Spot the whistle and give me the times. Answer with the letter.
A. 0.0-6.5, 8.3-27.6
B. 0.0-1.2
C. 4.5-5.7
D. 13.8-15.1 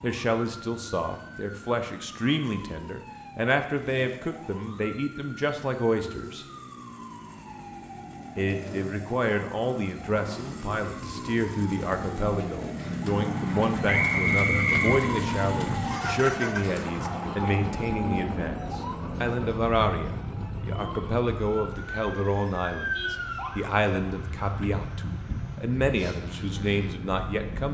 D.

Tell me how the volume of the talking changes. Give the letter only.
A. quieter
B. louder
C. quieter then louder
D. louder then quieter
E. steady
E.